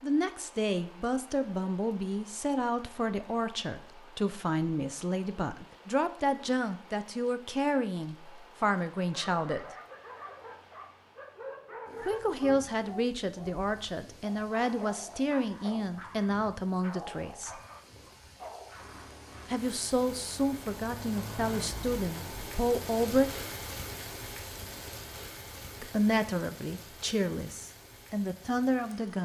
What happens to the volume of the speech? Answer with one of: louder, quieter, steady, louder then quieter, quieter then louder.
steady.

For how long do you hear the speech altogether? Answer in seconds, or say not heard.
23 s.